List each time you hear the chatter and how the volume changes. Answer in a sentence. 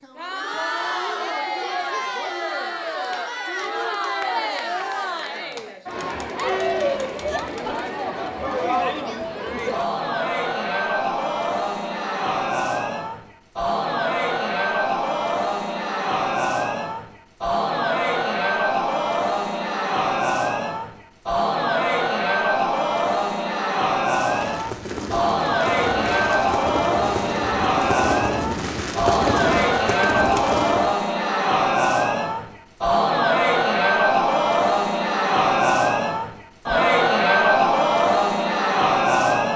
You can hear the chatter from 0.0 to 39.5 s, getting louder.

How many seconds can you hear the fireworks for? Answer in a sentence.
The fireworks can be heard for 7 seconds in total.